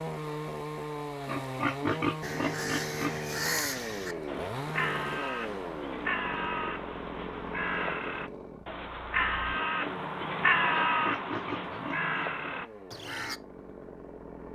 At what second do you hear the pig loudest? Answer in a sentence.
The loudest moment of the pig is at 2 seconds.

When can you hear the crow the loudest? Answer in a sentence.
The volume of the crow peaks at 11 seconds.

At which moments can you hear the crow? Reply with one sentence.
The crow can be heard from 2.2 to 13.4 s.